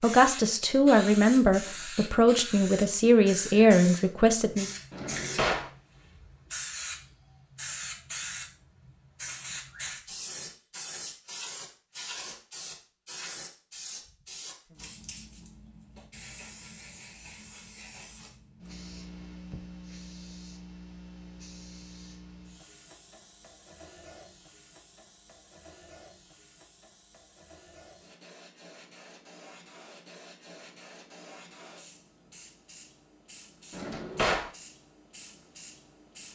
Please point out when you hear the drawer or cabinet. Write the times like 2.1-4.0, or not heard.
4.9-5.7, 33.7-34.5.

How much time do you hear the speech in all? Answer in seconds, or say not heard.
5 s.